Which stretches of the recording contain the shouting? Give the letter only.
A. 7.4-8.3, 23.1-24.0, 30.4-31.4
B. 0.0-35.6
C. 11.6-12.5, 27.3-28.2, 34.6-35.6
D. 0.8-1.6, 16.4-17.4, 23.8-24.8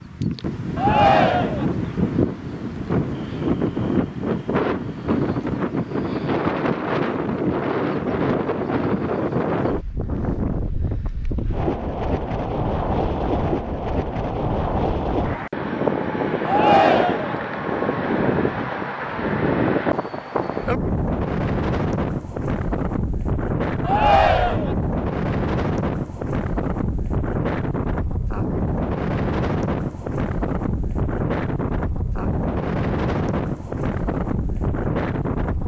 D.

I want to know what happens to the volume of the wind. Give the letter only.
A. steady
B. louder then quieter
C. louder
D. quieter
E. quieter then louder
A.